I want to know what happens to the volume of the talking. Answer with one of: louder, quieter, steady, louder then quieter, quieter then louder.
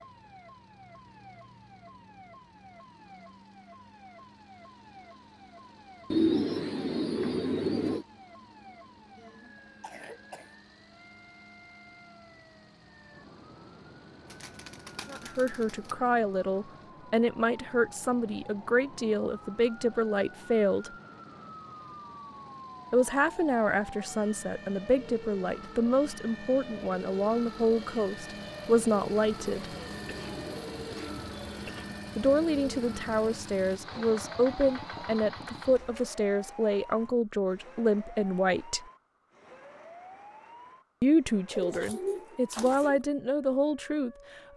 steady.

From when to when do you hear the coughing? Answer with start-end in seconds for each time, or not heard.
9.2-10.6, 30.1-32.0.